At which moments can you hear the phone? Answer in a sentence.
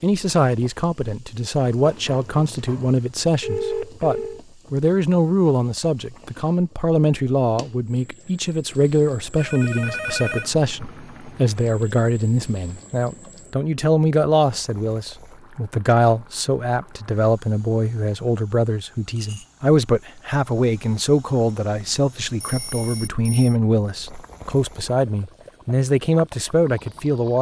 The phone can be heard from 1.8 to 4.4 s, from 9.3 to 10.5 s and from 22.4 to 23.6 s.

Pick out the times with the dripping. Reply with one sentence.
The dripping can't be heard in this clip.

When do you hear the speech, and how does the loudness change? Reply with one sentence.
You can hear the speech from 0.0 to 27.3 s, at a steady volume.